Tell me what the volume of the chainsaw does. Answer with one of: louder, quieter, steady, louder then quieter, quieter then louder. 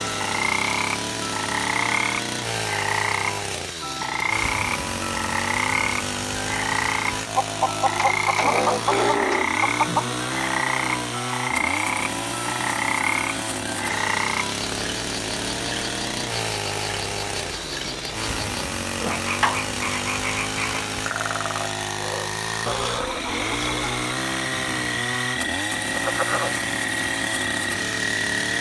steady.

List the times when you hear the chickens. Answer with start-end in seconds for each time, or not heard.
7.3-10.2, 22.6-23.9.